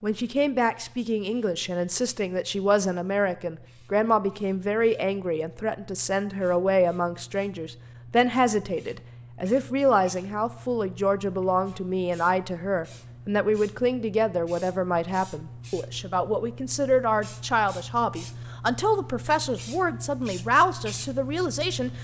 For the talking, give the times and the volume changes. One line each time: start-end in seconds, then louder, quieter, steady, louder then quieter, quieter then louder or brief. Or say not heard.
0.0-22.0 steady.